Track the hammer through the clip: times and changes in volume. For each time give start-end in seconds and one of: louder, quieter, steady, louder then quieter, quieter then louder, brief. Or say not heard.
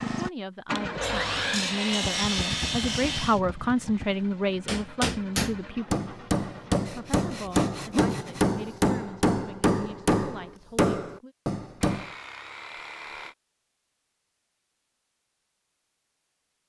4.7-12.1 steady.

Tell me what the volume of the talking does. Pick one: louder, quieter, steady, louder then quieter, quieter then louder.
louder then quieter.